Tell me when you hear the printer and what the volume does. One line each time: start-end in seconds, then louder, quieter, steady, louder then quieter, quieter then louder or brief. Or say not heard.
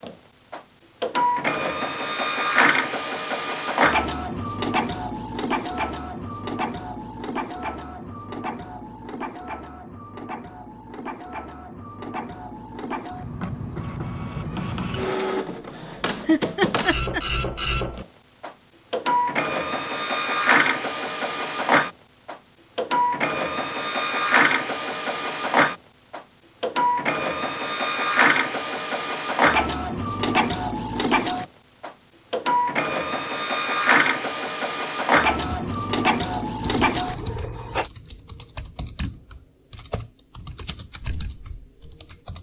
0.0-37.9 quieter then louder.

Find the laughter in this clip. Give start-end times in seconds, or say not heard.
16.2-17.2.